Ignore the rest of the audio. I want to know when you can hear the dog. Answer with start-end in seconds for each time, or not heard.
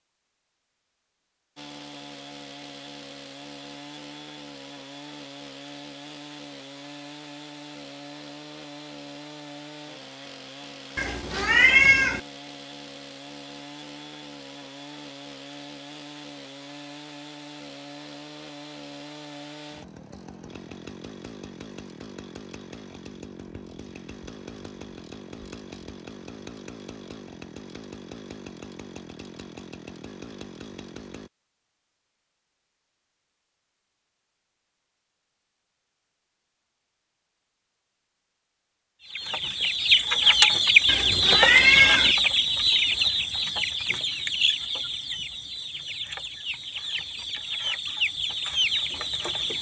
not heard.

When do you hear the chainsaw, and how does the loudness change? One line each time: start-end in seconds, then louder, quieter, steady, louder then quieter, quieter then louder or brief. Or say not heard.
1.6-31.3 steady.